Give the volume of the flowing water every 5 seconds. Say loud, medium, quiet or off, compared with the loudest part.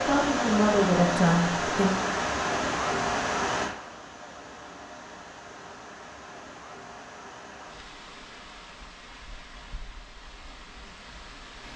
loud, quiet, quiet.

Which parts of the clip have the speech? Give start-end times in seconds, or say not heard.
0.0-1.9.